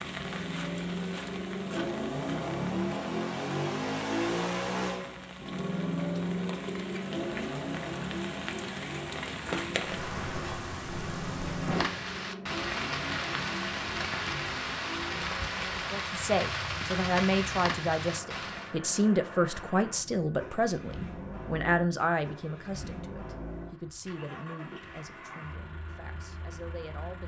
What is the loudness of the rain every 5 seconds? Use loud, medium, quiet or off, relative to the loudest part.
medium, medium, loud, loud, off, off.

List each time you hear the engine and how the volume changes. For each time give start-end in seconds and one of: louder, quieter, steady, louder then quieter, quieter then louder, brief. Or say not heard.
0.0-27.2 quieter.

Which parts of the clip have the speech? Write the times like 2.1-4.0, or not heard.
15.9-27.2.